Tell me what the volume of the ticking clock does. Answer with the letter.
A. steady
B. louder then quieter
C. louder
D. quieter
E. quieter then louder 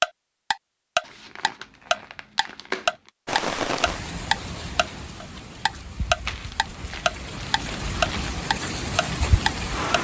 A.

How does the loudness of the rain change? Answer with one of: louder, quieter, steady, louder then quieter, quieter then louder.
quieter then louder.